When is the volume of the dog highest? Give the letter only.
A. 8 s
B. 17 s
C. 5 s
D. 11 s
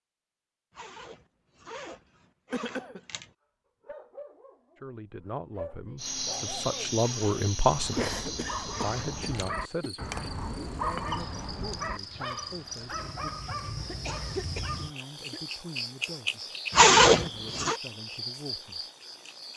D.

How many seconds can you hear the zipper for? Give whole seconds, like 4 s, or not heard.
6 s.